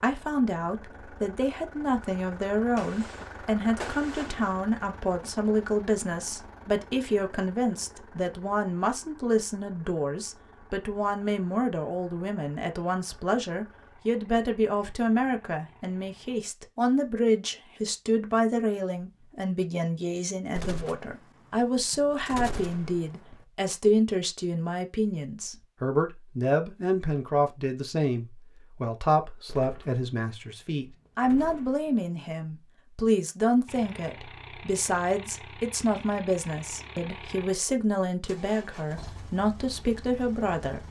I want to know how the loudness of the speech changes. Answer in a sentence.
The volume of the speech stays about the same.